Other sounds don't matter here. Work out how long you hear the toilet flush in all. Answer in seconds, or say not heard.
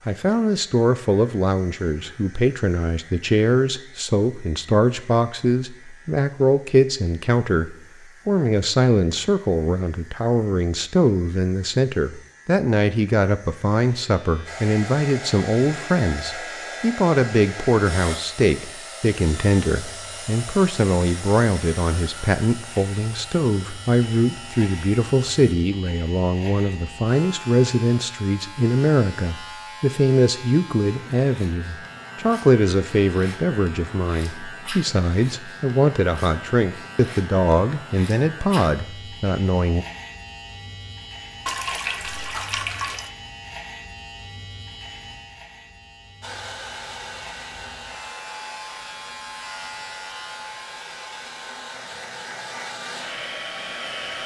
2 s.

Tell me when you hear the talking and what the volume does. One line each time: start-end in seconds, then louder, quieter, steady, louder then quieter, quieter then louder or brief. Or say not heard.
0.1-39.9 steady.